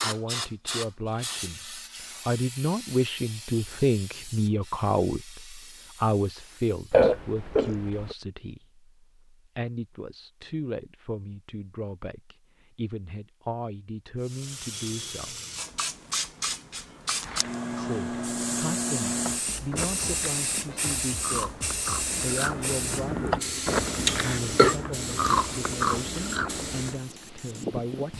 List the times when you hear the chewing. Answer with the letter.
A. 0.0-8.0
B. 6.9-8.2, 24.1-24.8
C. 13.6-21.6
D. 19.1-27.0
D.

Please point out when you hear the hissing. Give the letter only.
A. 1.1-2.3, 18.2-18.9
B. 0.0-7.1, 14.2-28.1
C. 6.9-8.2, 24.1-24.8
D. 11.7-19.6
B.